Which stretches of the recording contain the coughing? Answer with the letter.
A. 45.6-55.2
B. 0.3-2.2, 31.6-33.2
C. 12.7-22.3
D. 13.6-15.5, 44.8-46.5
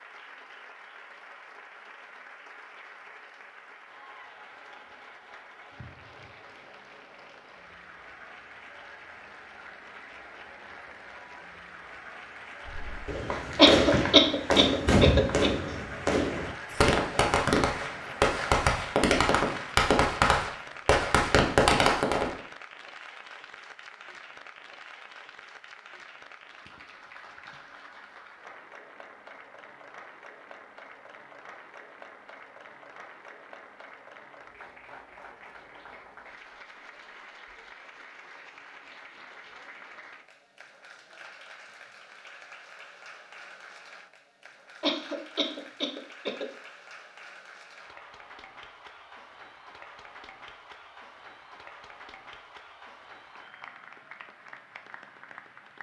D.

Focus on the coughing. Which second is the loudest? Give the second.
14 s.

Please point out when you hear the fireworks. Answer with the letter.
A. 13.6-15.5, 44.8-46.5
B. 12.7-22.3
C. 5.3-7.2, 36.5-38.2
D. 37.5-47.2
B.